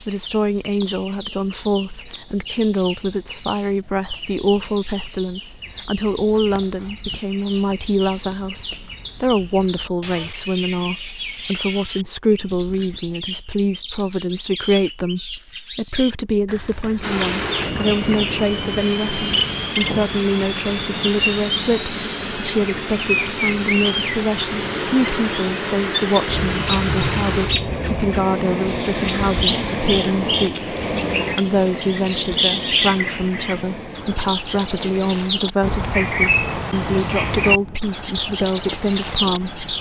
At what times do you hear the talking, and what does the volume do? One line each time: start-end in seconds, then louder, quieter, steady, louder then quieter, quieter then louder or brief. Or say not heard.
0.0-39.6 steady.